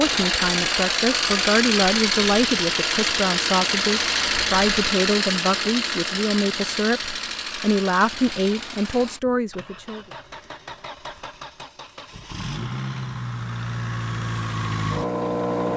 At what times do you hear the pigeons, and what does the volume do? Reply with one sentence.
You can't hear the pigeons here.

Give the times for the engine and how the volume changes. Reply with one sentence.
The engine can be heard from 0.0 to 15.7 s, getting quieter then louder.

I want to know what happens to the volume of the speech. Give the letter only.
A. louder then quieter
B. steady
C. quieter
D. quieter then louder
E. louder
B.